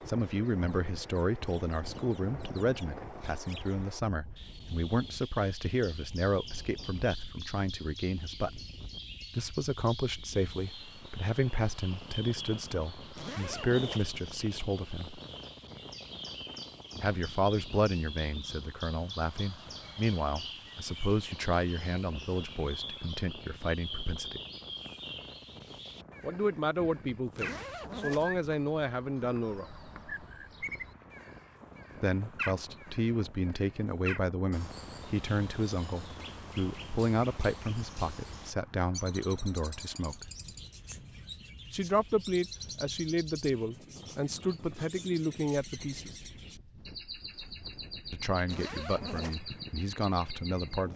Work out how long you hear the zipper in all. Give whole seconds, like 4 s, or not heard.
3 s.